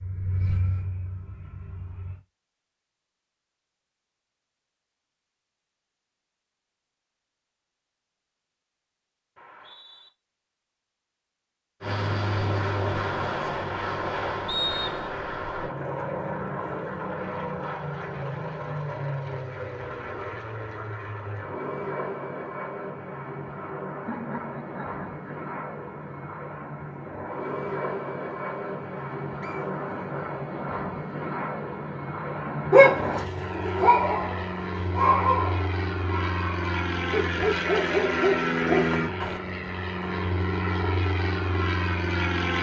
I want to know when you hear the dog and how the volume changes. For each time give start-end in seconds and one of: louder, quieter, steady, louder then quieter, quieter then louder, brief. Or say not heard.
32.7-39.4 quieter then louder.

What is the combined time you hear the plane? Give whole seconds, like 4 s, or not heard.
33 s.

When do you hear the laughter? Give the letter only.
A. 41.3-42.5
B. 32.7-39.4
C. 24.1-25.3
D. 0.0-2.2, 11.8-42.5
C.